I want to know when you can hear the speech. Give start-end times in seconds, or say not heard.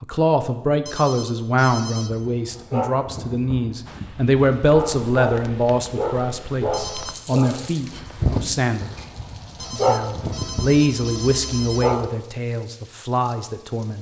0.0-8.9, 9.7-13.9.